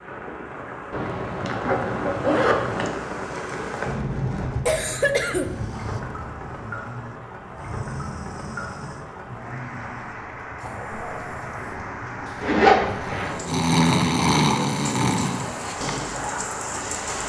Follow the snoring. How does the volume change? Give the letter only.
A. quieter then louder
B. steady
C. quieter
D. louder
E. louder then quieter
D.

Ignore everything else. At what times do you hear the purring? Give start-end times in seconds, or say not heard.
not heard.